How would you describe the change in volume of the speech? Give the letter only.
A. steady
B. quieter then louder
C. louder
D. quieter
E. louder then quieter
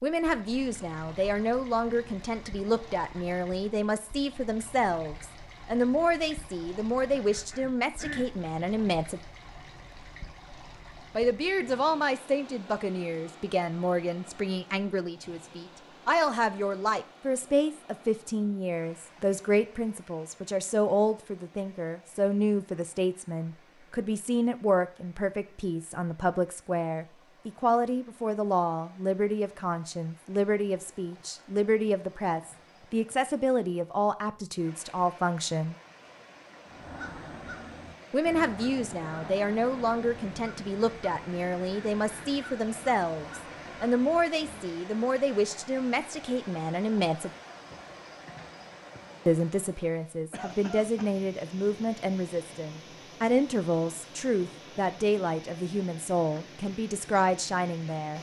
A.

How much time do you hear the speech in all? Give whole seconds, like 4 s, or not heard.
52 s.